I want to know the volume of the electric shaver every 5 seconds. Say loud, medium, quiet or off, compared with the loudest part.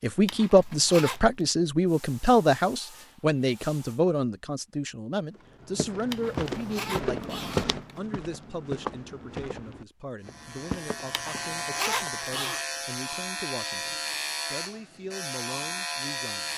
off, off, loud, loud.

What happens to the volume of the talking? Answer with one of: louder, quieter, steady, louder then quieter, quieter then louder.
quieter.